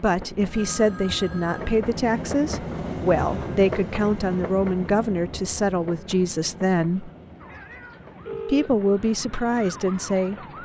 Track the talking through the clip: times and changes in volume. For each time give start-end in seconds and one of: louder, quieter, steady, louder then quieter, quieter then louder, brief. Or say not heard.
0.0-7.1 steady
8.4-10.3 brief.